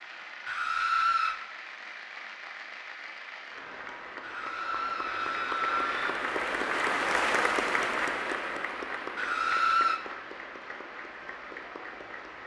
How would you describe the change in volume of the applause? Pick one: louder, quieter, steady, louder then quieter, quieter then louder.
louder then quieter.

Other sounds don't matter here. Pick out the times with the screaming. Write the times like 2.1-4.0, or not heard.
0.5-1.4, 4.2-6.1, 9.2-10.0.